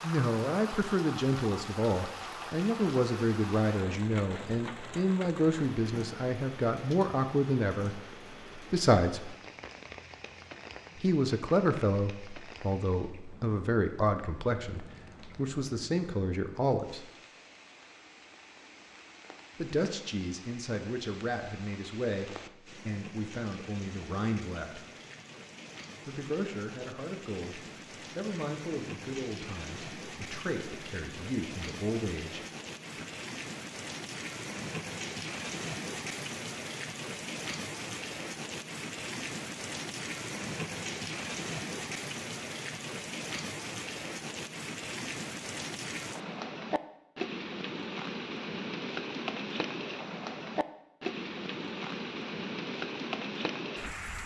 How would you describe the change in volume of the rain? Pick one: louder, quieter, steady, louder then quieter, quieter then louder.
quieter then louder.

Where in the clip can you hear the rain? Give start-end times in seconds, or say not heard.
0.0-54.2.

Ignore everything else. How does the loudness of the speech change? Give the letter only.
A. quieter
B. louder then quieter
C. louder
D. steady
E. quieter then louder
A.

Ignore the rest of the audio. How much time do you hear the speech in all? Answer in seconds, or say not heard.
27 s.